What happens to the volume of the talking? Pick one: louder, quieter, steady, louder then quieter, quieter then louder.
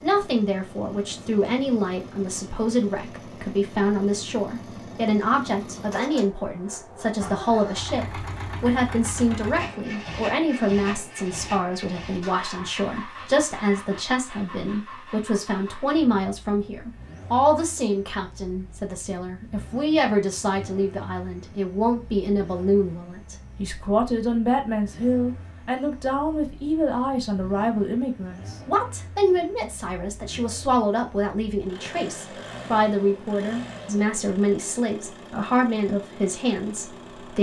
steady.